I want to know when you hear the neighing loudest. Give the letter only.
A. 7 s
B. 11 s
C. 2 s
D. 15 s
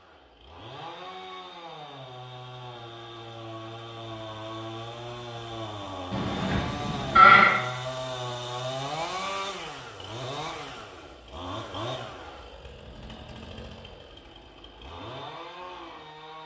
A.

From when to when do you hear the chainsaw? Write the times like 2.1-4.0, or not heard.
0.0-16.4.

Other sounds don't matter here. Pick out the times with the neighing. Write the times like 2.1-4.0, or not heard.
6.1-7.5.